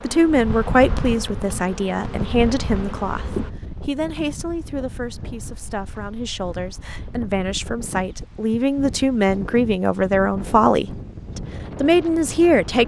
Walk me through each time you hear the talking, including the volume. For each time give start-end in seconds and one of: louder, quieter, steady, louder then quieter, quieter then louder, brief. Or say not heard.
0.0-12.8 quieter then louder.